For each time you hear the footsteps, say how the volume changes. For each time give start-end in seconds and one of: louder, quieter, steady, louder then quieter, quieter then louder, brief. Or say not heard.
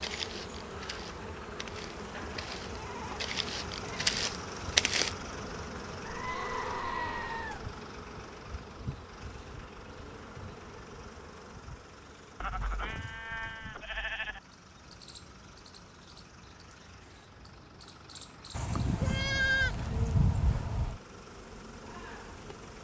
0.0-5.2 louder.